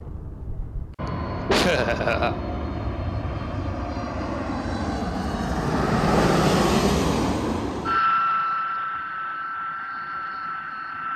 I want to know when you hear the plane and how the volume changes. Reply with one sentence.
You can hear the plane from 0.0 to 11.1 s, getting louder then quieter.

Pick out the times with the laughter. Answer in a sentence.
You can hear the laughter from 1.1 to 2.4 s.